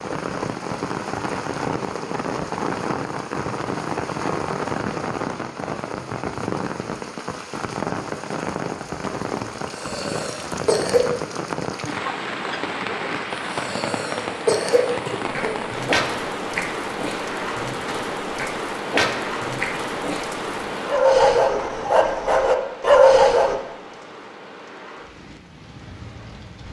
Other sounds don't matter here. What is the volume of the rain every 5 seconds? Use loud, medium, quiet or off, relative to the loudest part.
loud, loud, loud, loud, medium, quiet.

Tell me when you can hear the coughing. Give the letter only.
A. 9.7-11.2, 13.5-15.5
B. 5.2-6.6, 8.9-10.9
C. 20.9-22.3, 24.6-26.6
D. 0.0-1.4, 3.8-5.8
A.